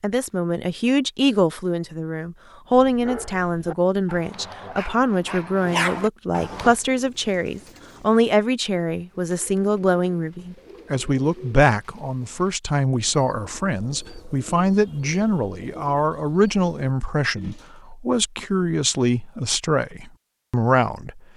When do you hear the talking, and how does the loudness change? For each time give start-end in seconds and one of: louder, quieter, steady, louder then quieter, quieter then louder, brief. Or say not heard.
0.0-21.2 steady.